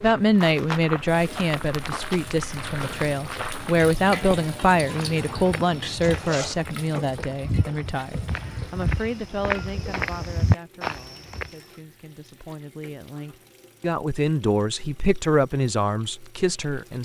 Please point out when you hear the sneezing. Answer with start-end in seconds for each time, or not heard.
not heard.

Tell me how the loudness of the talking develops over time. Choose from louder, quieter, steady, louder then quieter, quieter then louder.
quieter then louder.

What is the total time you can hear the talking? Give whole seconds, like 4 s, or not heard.
17 s.